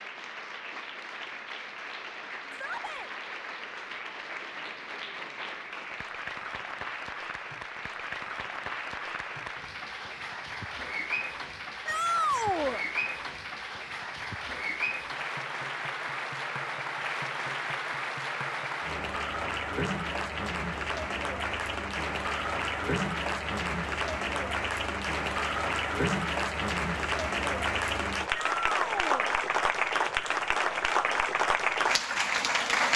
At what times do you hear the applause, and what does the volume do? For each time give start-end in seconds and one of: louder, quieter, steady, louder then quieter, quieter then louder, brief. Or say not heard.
0.0-32.9 louder.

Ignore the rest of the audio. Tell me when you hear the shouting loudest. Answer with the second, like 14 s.
12 s.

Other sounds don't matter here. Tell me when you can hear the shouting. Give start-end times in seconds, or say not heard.
2.5-3.1, 11.8-12.8, 28.6-29.3.